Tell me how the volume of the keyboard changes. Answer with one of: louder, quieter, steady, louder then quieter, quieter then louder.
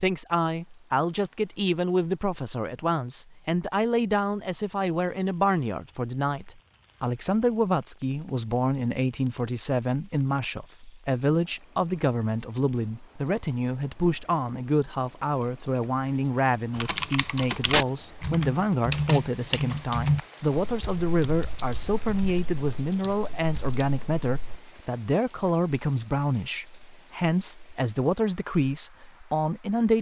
quieter.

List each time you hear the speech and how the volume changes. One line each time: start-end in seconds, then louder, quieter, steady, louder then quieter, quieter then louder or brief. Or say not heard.
0.0-29.9 steady.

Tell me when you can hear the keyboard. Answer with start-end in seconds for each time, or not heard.
16.8-24.6.